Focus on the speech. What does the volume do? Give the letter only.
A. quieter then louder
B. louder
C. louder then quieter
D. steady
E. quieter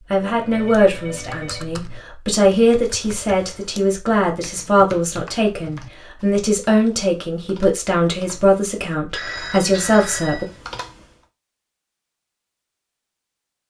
D.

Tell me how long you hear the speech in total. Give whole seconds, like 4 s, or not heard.
10 s.